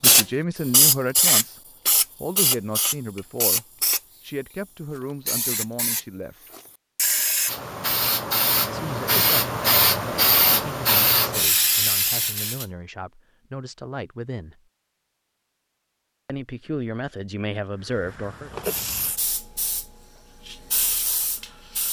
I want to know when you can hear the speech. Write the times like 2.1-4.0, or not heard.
0.0-1.6, 2.2-6.5, 8.7-14.6, 16.2-18.5.